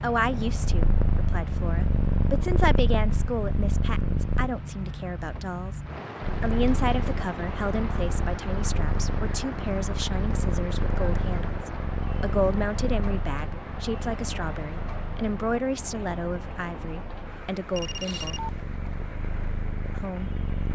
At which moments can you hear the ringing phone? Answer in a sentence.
You can hear the ringing phone from 17.7 to 18.6 s.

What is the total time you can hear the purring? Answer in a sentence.
You can hear the purring for 19 seconds altogether.